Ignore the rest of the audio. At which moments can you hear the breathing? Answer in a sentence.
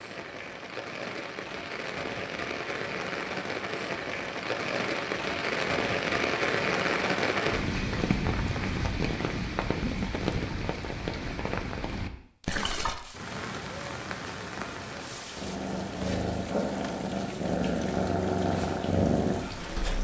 You can't hear the breathing here.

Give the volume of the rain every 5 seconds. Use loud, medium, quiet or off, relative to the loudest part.
medium, loud, medium, quiet.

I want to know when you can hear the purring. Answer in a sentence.
The purring can be heard from 15.3 to 19.9 s.